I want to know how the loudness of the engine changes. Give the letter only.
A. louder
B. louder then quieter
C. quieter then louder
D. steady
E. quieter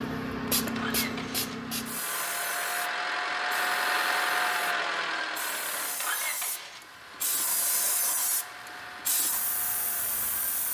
B.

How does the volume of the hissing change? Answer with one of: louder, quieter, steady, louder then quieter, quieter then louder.
quieter then louder.